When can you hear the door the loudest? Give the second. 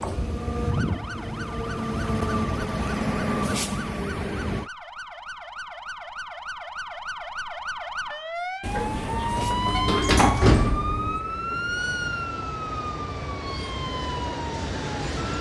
10 s.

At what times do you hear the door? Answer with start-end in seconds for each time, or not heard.
8.6-11.2.